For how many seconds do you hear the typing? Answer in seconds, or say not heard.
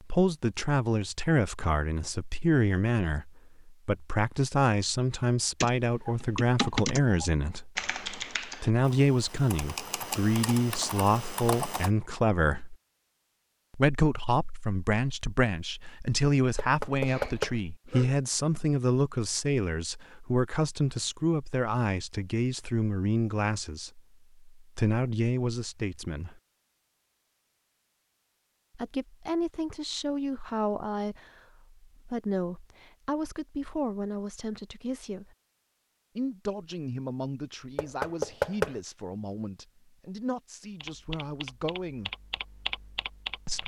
9 s.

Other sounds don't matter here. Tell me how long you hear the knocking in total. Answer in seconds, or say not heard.
2 s.